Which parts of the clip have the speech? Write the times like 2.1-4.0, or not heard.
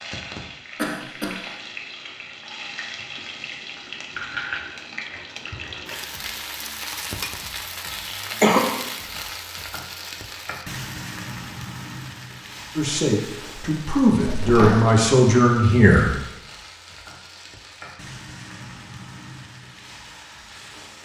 12.8-16.1.